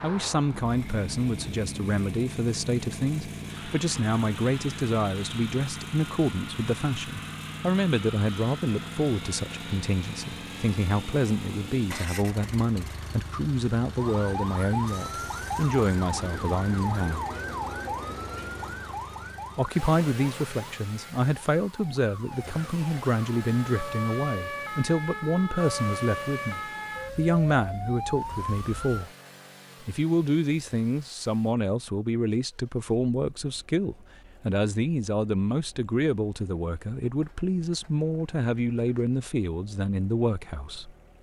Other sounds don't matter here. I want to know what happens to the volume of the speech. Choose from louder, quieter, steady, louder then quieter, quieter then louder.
steady.